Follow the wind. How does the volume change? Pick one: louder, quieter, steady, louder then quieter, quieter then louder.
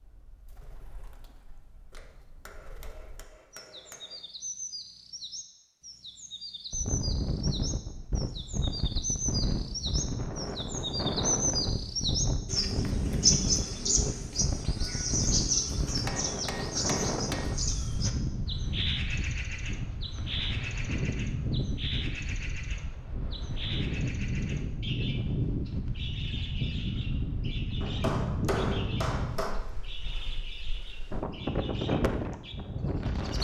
steady.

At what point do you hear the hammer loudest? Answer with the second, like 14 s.
29 s.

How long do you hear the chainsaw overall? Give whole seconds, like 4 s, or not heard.
not heard.